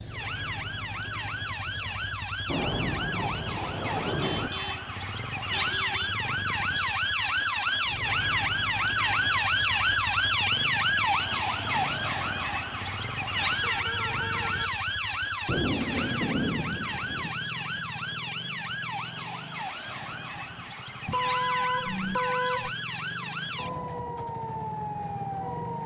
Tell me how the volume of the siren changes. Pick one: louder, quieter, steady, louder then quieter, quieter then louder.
louder then quieter.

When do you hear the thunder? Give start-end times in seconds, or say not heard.
2.5-4.5, 15.4-17.3.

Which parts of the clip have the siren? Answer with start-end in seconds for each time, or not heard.
0.0-25.8.